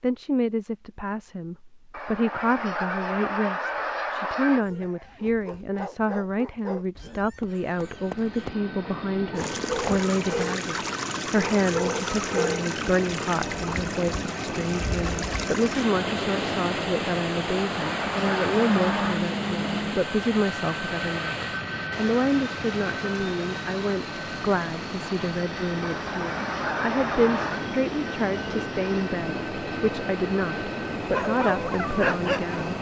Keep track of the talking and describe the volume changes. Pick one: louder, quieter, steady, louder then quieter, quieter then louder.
steady.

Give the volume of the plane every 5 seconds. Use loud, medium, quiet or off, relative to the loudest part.
off, medium, loud, loud, loud, loud, loud.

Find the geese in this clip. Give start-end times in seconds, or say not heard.
1.9-4.7, 17.5-19.2, 25.8-27.7.